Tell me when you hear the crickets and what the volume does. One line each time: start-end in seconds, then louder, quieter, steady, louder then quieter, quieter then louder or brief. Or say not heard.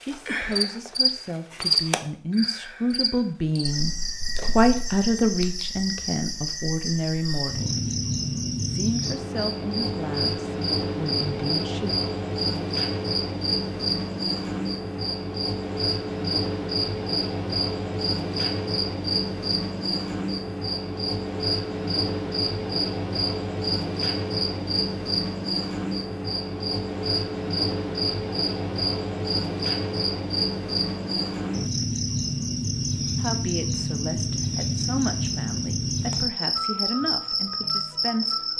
0.0-38.5 steady.